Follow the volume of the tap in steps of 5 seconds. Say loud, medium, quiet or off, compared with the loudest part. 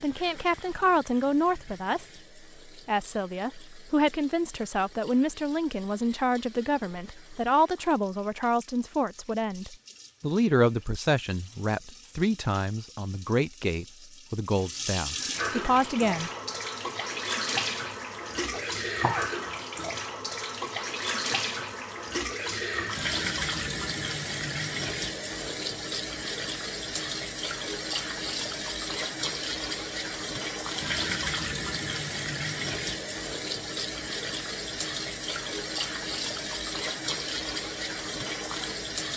quiet, quiet, quiet, loud, loud, loud, loud, loud.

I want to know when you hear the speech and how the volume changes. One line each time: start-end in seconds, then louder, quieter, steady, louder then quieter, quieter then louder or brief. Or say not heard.
0.0-16.3 steady.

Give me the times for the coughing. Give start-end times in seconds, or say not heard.
18.5-19.3.